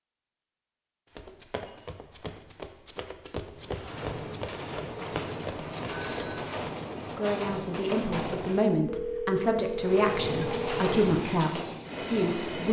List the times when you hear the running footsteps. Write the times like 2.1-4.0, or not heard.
1.1-7.0.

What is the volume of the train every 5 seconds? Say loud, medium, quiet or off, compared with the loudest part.
medium, loud, loud.